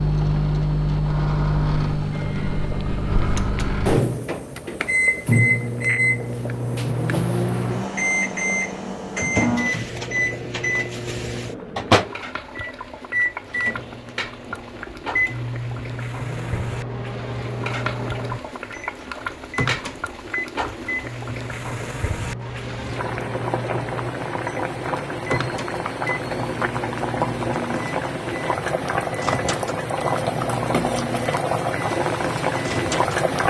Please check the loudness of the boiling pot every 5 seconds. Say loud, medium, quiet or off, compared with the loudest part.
quiet, quiet, quiet, medium, medium, loud, loud.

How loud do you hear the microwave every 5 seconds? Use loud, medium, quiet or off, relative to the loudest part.
loud, loud, loud, medium, medium, medium, medium.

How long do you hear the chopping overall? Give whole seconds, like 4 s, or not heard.
not heard.